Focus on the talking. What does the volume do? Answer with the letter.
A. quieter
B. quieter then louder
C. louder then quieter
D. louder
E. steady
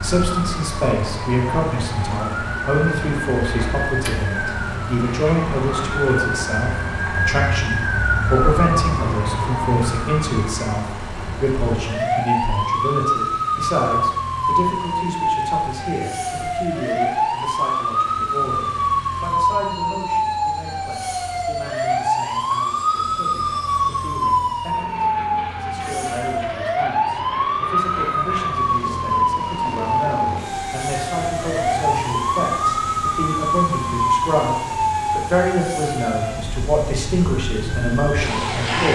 B.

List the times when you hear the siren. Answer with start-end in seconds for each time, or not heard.
0.0-38.8.